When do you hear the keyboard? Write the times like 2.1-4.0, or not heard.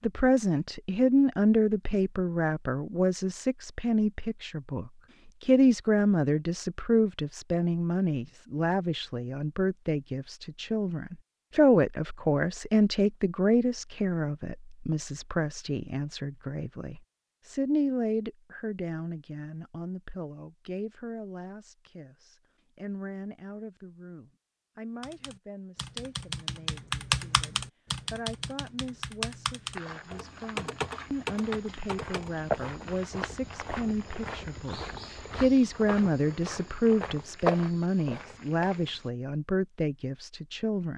25.0-32.4.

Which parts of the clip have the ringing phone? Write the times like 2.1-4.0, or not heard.
not heard.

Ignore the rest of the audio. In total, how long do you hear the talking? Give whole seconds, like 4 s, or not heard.
41 s.